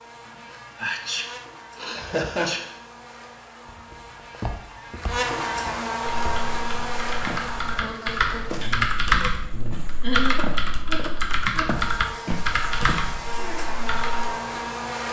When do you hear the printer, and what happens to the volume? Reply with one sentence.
The printer can't be heard in this clip.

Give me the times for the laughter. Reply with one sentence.
The laughter can be heard from 1.9 to 2.5 s and from 8.6 to 10.6 s.